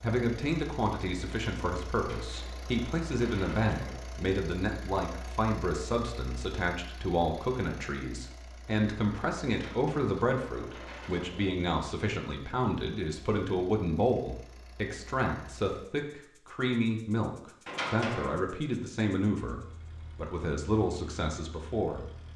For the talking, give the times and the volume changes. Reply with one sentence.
You can hear the talking from 0.0 to 22.1 s, at a steady volume.